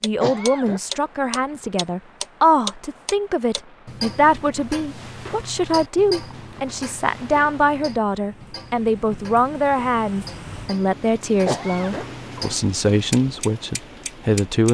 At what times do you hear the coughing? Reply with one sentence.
You can hear the coughing from 0.2 to 0.8 s and from 11.4 to 12.1 s.